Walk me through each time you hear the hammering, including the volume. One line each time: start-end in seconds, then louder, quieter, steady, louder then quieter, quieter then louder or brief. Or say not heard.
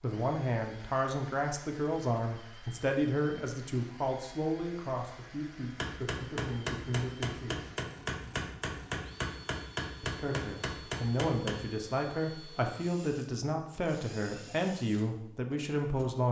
5.8-11.7 steady.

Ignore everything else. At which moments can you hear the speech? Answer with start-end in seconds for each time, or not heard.
0.0-7.8, 10.0-16.2.